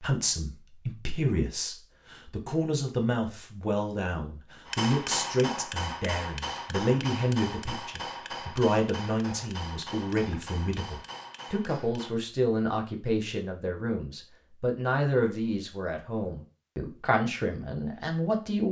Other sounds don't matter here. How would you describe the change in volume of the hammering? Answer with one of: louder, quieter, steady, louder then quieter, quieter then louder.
quieter.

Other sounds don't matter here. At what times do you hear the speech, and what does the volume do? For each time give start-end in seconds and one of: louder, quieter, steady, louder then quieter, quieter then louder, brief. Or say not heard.
0.0-18.6 steady.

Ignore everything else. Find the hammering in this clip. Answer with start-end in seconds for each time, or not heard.
4.7-12.2.